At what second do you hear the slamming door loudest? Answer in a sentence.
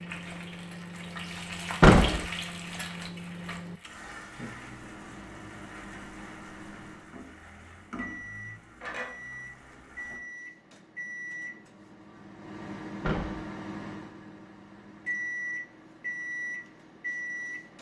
The volume of the slamming door peaks at 2 seconds.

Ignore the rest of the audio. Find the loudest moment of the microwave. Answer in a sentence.
The volume of the microwave peaks at 16 seconds.